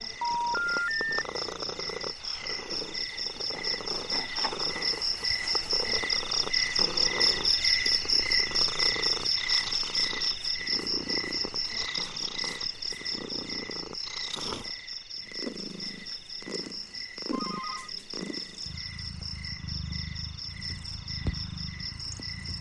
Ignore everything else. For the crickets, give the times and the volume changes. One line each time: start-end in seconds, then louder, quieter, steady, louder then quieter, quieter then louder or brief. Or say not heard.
0.0-22.5 louder then quieter.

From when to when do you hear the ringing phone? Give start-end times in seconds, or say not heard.
0.2-1.1, 17.3-17.9.